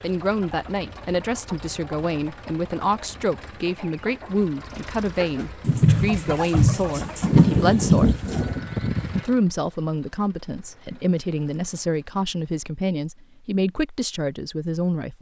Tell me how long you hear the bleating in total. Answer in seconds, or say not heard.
2 s.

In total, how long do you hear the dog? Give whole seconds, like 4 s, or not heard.
not heard.